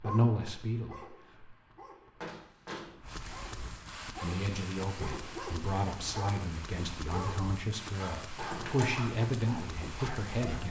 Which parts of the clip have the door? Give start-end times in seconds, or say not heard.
2.2-2.9, 8.3-8.9.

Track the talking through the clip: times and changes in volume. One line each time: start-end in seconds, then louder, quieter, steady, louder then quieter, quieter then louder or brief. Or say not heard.
0.0-1.4 brief
4.2-10.6 louder.